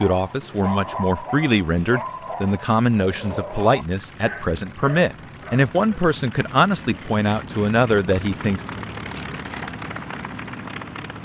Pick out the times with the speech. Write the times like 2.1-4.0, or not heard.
0.0-8.6.